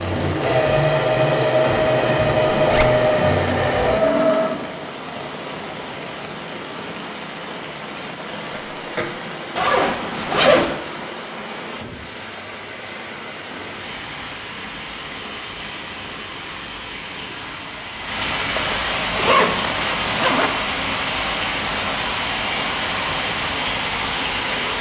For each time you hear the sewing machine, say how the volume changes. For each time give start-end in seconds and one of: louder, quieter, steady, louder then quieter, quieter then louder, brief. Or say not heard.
0.0-4.5 steady.